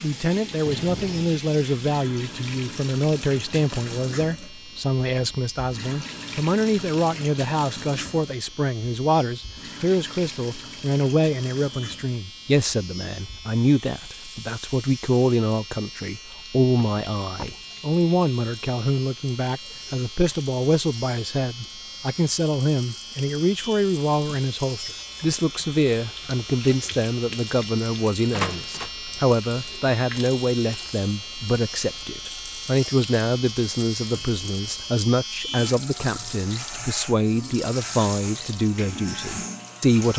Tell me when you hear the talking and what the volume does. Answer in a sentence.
You can hear the talking from 0.0 to 40.1 s, at a steady volume.